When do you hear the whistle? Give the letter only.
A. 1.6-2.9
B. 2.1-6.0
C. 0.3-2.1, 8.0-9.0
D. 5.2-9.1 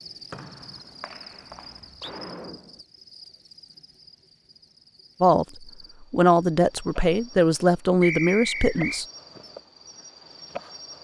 C.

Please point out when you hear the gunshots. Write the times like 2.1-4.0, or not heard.
1.6-2.9.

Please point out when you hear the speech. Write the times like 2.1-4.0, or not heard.
5.2-9.1.